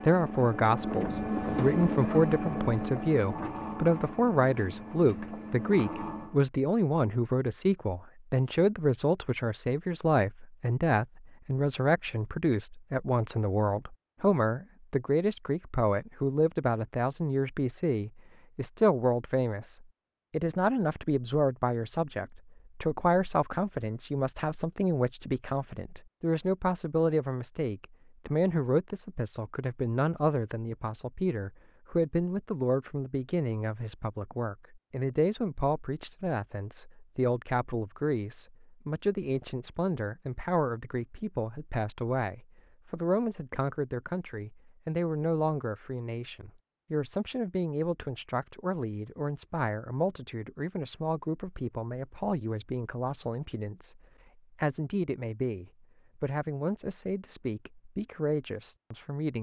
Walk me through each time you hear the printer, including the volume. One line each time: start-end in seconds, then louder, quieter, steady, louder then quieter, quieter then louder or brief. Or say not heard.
0.0-6.3 quieter.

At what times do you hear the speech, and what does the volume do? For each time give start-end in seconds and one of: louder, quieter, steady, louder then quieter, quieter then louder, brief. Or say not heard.
0.0-59.3 quieter.